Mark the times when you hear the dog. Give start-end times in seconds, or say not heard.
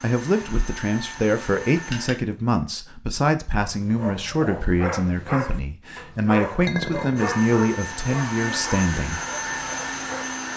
3.6-10.2.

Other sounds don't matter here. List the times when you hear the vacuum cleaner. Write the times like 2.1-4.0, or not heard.
0.0-2.1, 7.2-10.5.